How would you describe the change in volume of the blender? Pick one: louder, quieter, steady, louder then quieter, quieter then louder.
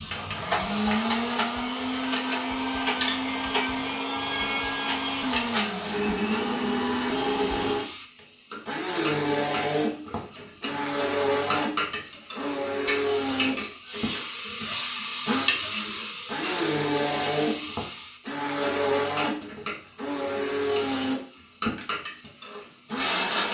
steady.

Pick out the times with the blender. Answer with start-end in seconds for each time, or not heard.
0.0-23.4.